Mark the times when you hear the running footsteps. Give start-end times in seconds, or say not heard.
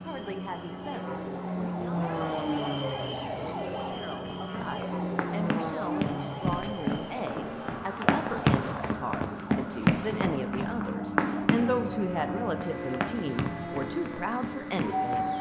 4.4-15.3.